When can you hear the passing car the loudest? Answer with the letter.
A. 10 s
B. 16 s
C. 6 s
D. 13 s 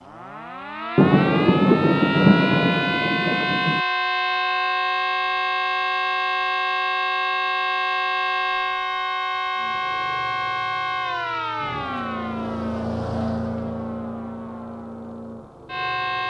D.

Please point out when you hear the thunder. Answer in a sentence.
You can hear the thunder from 0.9 to 3.8 s.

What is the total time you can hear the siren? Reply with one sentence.
You can hear the siren for 16 seconds altogether.